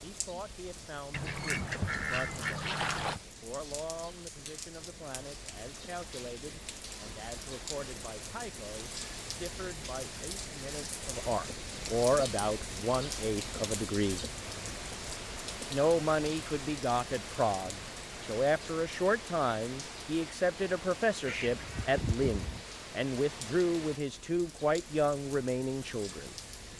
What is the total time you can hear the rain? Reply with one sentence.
The rain can be heard for 27 seconds in total.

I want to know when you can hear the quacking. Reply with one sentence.
The quacking can be heard from 1.1 to 3.2 s and from 21.2 to 22.6 s.